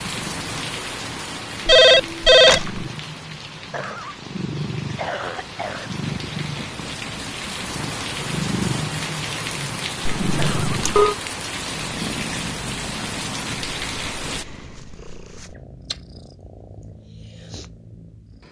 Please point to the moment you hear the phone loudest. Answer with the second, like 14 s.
2 s.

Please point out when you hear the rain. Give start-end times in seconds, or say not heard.
0.0-14.4.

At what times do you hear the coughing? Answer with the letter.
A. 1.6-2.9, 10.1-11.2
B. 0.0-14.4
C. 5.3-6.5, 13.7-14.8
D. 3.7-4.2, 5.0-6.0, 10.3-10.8
D.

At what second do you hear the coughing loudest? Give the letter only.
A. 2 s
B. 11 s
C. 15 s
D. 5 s
D.